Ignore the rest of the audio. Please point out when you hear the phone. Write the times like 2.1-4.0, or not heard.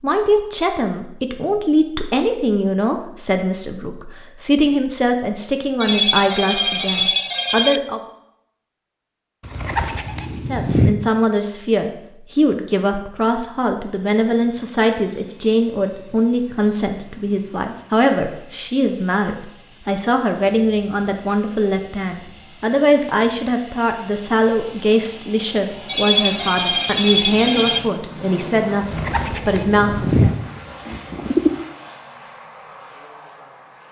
5.8-7.8, 25.9-27.8.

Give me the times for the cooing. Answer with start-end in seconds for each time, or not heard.
9.4-10.9, 28.8-31.5.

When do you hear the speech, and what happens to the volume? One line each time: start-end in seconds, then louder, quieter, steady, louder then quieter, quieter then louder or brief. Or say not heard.
0.0-8.0 steady
10.3-30.3 steady.